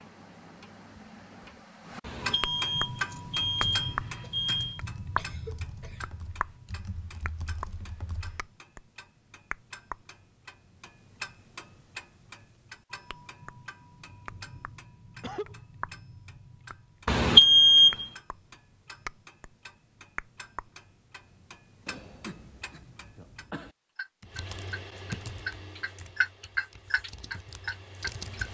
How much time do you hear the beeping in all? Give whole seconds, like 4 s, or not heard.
4 s.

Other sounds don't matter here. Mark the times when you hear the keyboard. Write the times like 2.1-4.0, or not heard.
2.9-8.4, 24.2-28.4.